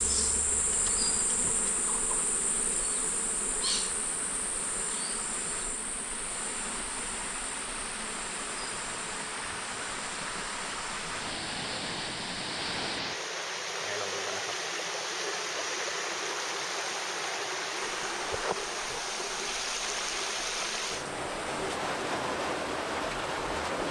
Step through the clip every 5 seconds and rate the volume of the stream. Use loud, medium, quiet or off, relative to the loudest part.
medium, medium, loud, loud, loud.